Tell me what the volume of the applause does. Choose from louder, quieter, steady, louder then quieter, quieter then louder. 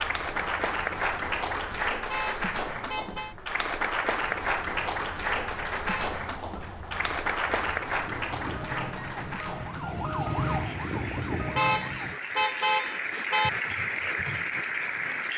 quieter then louder.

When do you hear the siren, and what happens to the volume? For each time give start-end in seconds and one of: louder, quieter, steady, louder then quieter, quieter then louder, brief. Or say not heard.
0.0-1.8 brief
4.2-12.2 louder.